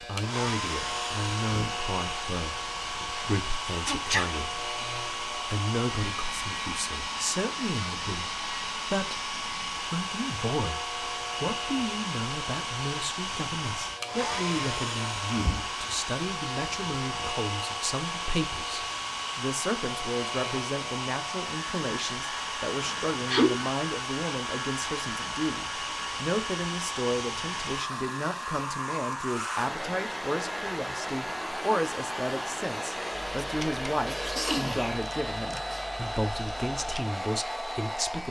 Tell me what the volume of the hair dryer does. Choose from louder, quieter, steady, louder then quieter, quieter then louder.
steady.